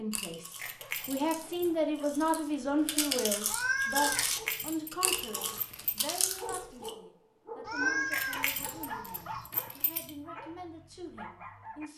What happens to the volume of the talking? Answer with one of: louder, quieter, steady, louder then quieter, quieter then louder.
quieter.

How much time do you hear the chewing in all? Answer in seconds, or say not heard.
7 s.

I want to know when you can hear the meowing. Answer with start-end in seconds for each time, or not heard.
3.5-4.2, 7.7-9.4.